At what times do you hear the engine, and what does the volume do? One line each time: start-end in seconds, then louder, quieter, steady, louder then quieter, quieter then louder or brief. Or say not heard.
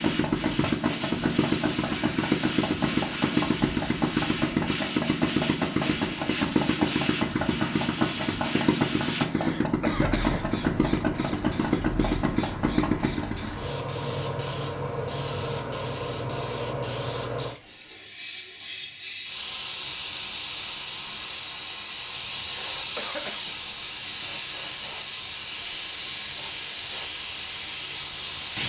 0.0-13.5 steady.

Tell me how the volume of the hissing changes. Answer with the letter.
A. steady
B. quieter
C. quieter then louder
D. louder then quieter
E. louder
A.